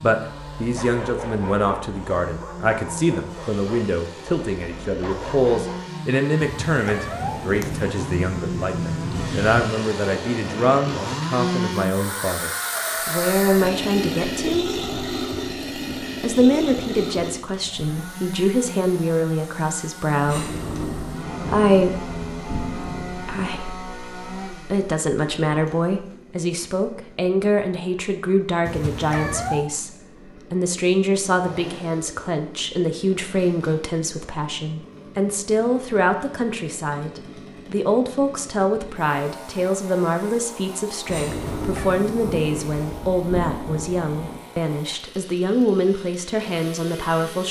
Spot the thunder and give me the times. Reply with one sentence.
You can hear the thunder from 7.2 to 9.7 s, from 20.2 to 23.6 s and from 41.0 to 44.4 s.